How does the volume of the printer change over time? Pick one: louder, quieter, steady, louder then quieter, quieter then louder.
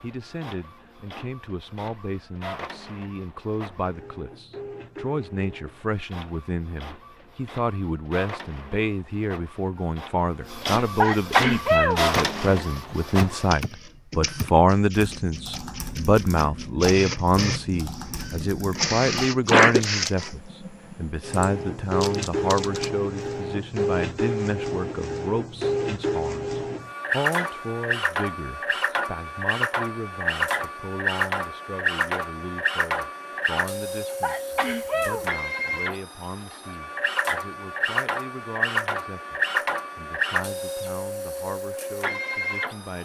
louder.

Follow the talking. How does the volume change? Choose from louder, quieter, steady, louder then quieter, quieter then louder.
louder then quieter.